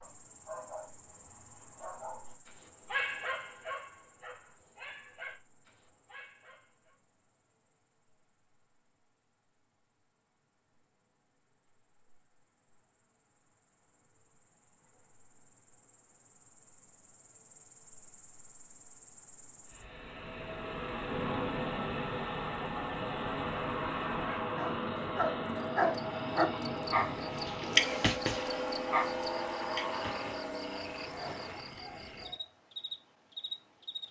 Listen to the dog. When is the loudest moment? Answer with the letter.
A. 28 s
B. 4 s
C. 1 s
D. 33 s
A.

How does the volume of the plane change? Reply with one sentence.
The loudness of the plane stays about the same.